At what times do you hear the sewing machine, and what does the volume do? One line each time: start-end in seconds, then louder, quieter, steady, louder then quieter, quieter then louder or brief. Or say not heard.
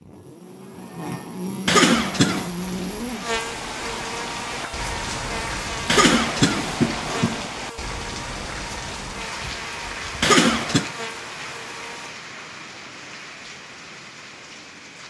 not heard.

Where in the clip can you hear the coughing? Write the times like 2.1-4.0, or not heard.
1.6-2.5, 5.8-7.5, 10.2-10.9.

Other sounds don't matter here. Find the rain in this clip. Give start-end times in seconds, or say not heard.
2.4-15.0.